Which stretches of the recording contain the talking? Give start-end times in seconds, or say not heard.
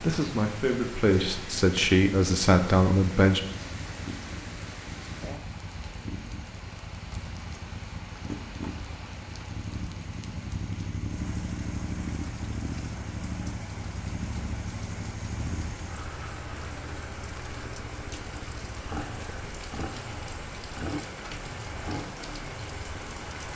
0.0-3.4.